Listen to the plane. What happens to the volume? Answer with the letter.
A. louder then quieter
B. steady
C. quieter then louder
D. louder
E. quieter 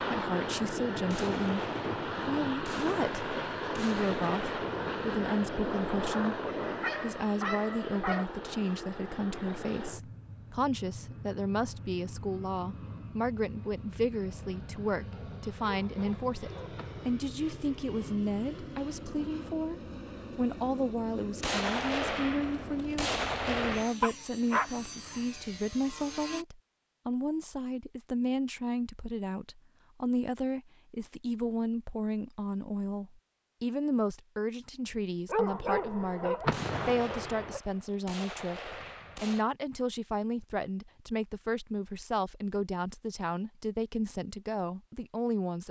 E.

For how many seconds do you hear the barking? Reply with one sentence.
You can hear the barking for 7 seconds altogether.